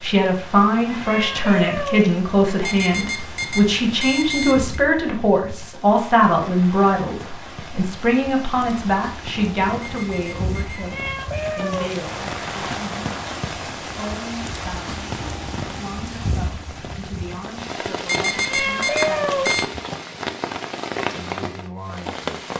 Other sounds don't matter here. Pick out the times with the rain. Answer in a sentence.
The rain can be heard from 0.0 to 22.5 s.